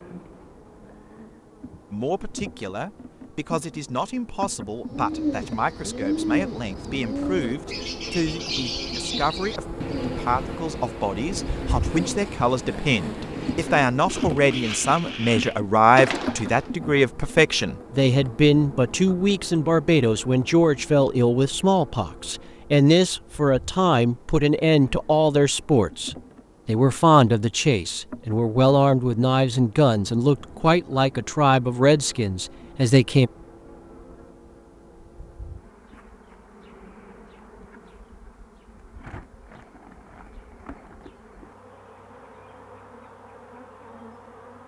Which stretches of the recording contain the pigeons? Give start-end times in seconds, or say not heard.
4.9-16.7.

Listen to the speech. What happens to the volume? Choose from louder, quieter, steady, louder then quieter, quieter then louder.
louder.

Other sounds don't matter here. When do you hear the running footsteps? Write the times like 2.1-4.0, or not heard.
not heard.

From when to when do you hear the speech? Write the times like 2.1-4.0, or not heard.
1.9-33.3.